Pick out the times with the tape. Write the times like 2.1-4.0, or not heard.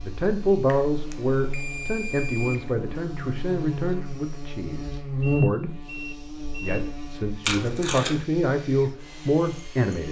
7.4-8.2.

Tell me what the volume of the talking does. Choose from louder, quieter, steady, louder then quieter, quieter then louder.
quieter then louder.